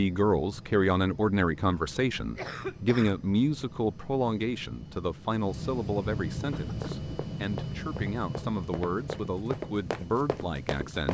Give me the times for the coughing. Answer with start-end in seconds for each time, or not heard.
2.4-3.6, 6.5-7.1.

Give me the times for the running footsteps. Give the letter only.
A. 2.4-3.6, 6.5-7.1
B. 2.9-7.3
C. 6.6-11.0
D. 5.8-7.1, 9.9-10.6
C.